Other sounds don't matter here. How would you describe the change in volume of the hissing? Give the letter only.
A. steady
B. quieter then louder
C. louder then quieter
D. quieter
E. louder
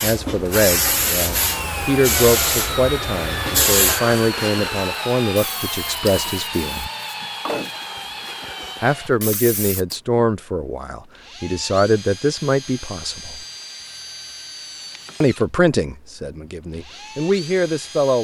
D.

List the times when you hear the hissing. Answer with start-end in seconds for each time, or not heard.
0.0-9.9.